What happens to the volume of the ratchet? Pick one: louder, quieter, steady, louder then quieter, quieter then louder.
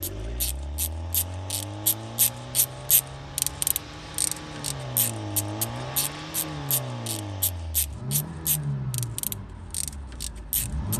quieter.